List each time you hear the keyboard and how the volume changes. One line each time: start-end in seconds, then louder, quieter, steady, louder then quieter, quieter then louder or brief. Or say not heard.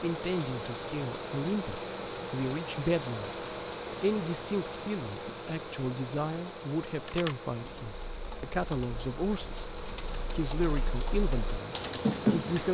7.0-12.6 louder.